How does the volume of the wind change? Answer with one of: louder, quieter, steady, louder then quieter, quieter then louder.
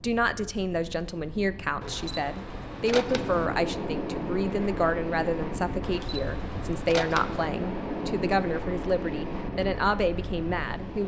louder.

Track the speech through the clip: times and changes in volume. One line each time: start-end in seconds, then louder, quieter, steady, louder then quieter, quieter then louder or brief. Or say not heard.
0.0-11.0 steady.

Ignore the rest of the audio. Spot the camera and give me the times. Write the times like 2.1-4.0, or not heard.
1.8-3.5, 5.8-7.5.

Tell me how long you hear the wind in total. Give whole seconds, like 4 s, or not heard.
11 s.